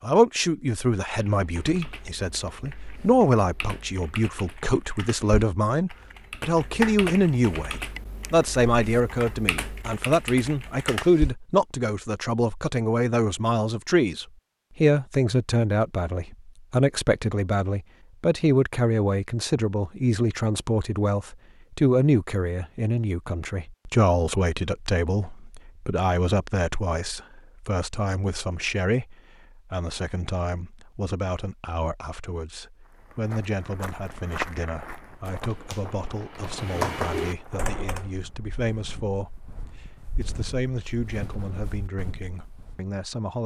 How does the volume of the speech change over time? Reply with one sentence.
The loudness of the speech goes down.